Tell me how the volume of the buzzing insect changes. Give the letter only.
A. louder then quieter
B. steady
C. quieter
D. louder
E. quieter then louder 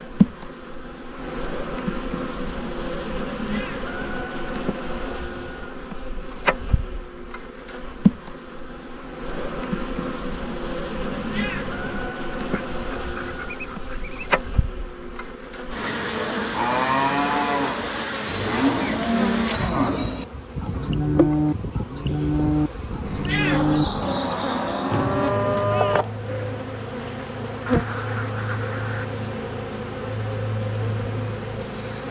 B.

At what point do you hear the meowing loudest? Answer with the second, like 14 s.
23 s.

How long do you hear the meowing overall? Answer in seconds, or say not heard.
3 s.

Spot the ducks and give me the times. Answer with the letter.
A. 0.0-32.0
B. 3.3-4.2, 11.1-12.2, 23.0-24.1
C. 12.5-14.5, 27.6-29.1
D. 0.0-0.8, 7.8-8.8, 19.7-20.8
C.